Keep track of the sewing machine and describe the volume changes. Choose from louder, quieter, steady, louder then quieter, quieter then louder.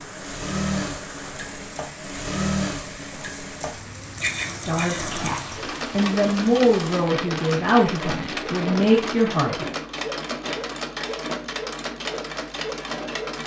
steady.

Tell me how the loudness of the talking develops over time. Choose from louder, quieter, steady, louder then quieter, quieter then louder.
louder.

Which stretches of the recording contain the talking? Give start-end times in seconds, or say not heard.
4.5-9.7.